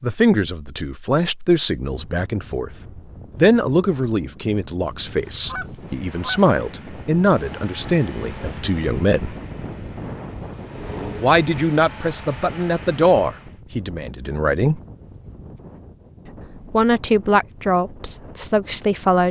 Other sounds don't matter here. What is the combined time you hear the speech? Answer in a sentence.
The speech can be heard for 15 seconds in total.